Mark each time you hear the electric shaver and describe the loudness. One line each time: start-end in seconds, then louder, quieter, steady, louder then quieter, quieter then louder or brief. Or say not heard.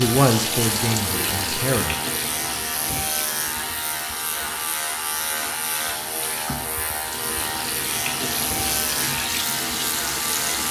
0.0-10.6 steady.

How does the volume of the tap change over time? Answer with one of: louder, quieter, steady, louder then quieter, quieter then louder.
quieter then louder.